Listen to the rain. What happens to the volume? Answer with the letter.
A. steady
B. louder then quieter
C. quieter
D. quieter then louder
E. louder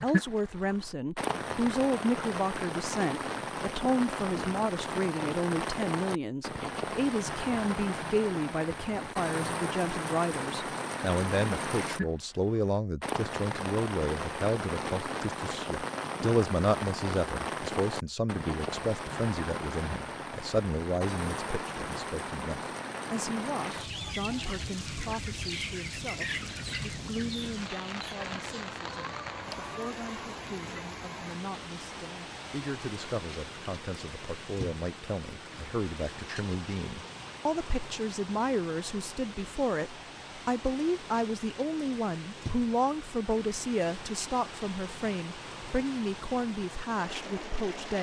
C.